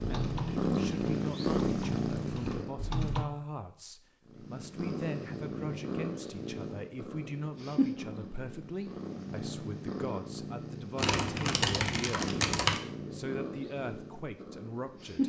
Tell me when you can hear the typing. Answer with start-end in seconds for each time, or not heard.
0.0-3.2, 10.9-12.8.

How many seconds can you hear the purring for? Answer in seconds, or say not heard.
14 s.